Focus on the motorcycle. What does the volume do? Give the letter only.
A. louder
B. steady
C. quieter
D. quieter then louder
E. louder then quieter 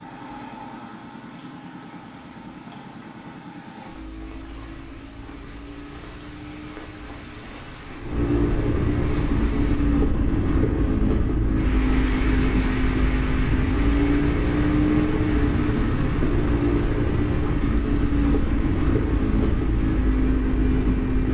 A.